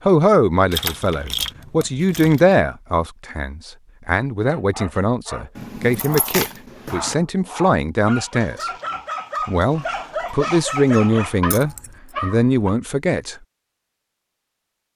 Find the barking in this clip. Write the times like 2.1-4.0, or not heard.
4.4-12.8.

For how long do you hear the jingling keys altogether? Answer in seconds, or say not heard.
4 s.